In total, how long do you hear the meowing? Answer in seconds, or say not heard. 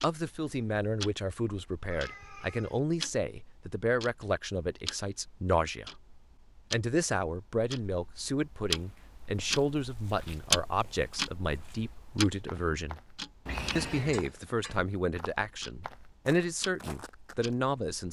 2 s.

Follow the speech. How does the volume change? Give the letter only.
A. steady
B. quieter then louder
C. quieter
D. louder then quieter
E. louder
A.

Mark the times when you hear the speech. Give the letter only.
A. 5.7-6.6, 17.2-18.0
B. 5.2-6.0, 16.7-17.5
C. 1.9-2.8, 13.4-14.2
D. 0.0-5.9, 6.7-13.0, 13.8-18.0
D.